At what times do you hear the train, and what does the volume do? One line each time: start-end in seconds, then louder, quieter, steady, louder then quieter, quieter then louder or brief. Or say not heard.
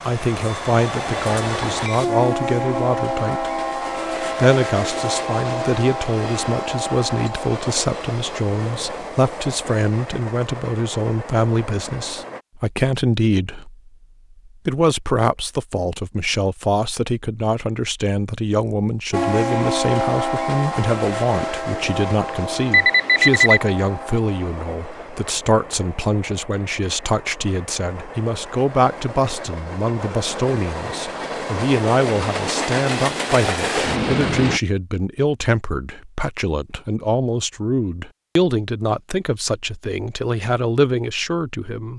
0.0-12.4 quieter
19.1-34.6 quieter then louder.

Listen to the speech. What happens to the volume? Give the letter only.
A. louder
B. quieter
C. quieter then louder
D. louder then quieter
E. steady
E.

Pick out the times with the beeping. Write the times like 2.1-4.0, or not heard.
22.7-23.6.